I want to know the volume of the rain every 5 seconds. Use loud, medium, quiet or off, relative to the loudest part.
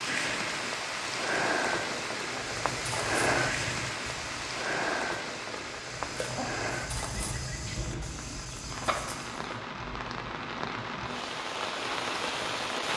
loud, medium, loud.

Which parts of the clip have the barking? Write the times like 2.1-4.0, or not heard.
not heard.